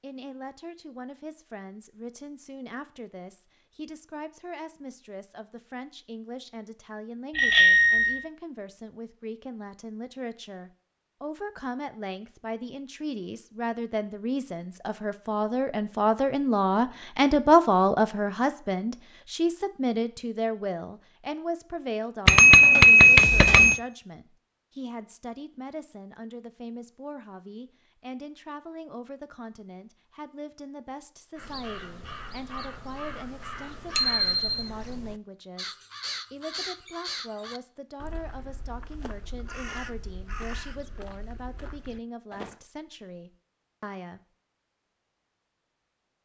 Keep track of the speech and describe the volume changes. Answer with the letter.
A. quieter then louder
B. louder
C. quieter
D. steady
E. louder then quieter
E.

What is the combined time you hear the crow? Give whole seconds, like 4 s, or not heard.
11 s.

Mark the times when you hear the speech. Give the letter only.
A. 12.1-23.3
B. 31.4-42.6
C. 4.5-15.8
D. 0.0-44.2
D.